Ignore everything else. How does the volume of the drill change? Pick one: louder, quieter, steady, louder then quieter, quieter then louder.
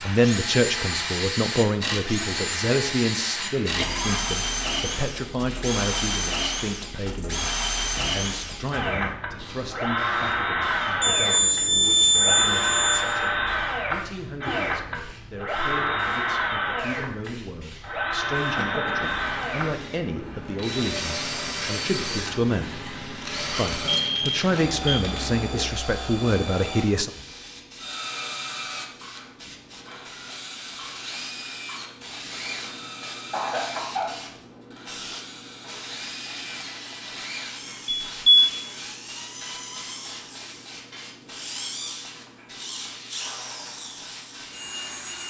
quieter.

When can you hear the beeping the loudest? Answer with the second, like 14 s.
12 s.